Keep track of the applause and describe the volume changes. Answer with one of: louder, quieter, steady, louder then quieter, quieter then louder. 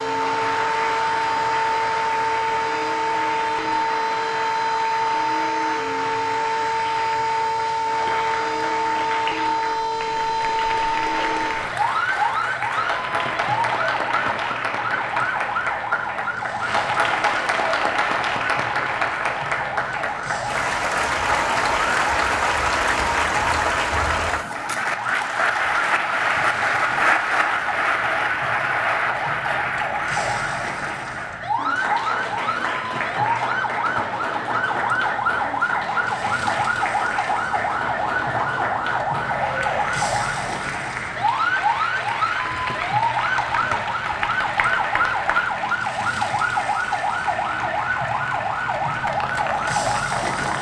louder then quieter.